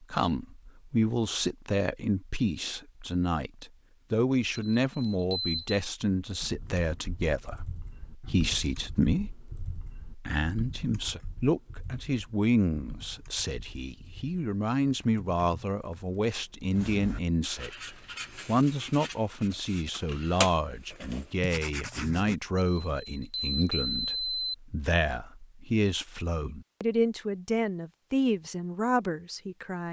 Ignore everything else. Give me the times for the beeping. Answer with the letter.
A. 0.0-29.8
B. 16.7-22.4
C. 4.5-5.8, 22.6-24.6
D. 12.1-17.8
C.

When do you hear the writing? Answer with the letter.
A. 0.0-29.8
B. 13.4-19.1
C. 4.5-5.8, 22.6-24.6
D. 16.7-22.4
D.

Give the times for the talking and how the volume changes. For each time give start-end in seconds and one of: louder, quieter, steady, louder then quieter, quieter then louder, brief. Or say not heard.
0.0-29.8 steady.